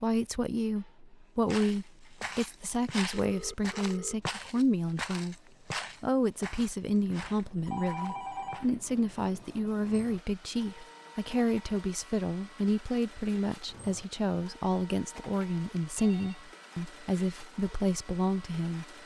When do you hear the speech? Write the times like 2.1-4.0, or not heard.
0.0-5.3, 6.0-18.9.